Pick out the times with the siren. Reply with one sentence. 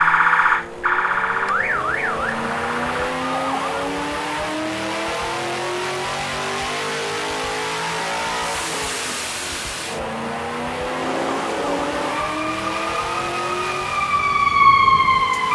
The siren can be heard from 0.0 to 3.8 s and from 10.8 to 15.5 s.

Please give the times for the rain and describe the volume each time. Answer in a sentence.
You can't hear the rain here.